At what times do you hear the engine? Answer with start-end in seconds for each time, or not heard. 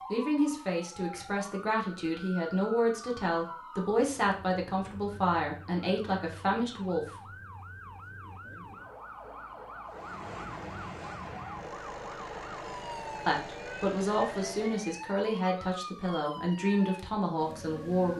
9.8-15.0.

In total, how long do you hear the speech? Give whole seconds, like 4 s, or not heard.
12 s.